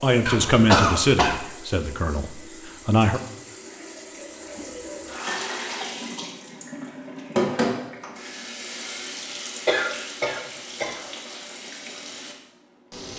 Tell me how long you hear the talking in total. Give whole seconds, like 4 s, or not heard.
3 s.